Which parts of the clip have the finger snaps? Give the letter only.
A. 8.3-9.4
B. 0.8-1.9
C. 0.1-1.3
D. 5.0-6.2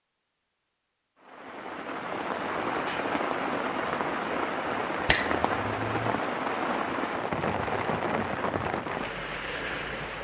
D.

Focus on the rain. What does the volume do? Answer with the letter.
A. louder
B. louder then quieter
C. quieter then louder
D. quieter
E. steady
E.